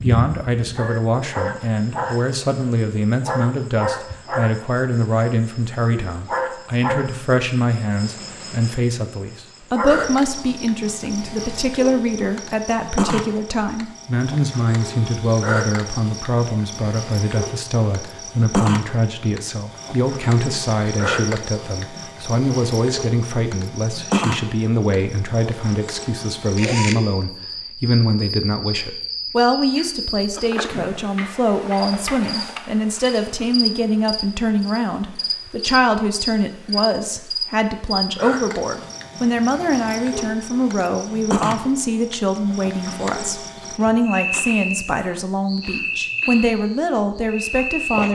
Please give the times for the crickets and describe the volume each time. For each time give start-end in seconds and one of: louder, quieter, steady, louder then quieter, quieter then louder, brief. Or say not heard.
0.0-48.1 steady.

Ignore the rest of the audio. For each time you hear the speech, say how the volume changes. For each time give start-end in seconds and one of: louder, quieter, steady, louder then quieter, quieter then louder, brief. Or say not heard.
0.0-48.1 steady.